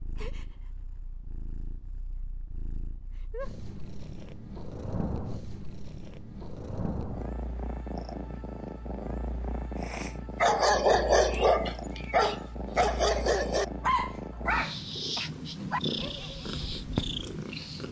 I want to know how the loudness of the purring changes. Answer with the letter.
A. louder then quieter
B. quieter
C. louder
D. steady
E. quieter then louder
C.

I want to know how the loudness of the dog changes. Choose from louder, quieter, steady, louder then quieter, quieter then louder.
quieter.